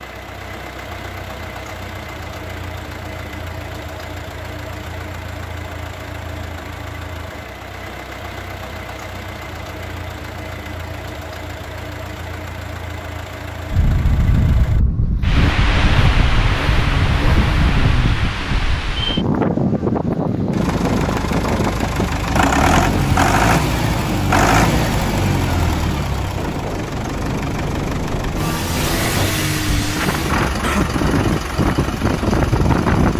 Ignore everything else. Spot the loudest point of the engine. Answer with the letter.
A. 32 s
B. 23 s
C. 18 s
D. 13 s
B.